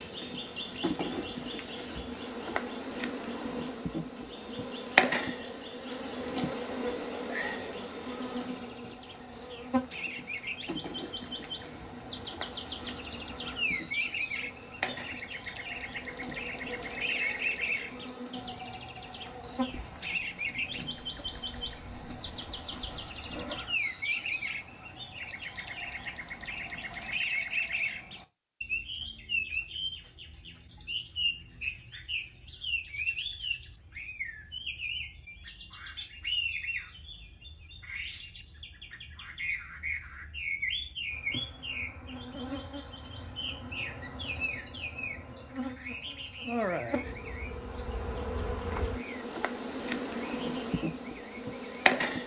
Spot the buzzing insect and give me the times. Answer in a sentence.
You can hear the buzzing insect from 0.0 to 23.6 s and from 41.1 to 52.2 s.